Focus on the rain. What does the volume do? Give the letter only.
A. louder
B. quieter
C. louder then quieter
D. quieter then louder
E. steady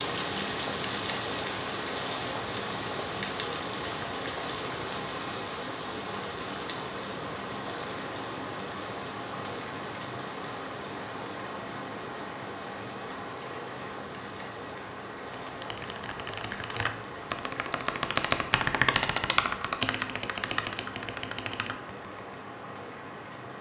B.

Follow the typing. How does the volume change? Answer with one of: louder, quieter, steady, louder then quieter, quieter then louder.
louder then quieter.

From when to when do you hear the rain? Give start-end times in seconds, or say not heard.
0.0-23.5.